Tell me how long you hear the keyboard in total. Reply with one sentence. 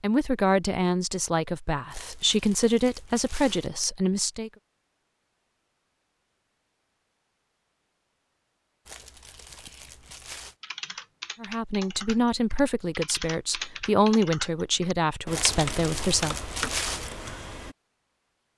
You can hear the keyboard for 8 seconds altogether.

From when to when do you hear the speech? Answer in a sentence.
The speech can be heard from 0.0 to 4.5 s and from 11.4 to 16.4 s.